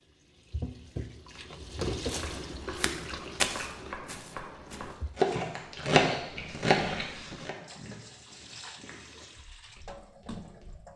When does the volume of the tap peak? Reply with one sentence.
The loudest moment of the tap is at 2 seconds.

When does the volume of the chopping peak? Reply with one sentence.
The loudest moment of the chopping is at 6 seconds.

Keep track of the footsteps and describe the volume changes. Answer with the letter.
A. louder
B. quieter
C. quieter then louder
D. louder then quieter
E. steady
B.